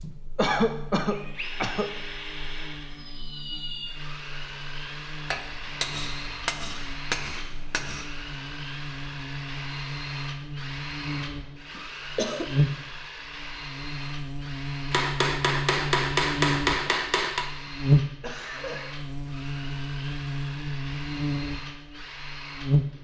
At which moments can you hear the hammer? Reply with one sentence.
You can hear the hammer from 5.3 to 8.1 s and from 14.9 to 17.5 s.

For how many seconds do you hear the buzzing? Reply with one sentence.
You can hear the buzzing for 23 seconds altogether.